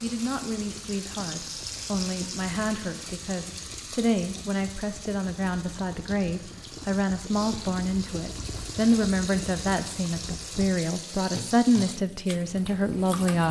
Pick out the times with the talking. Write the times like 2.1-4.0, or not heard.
0.0-13.4.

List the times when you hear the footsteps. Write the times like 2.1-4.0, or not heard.
not heard.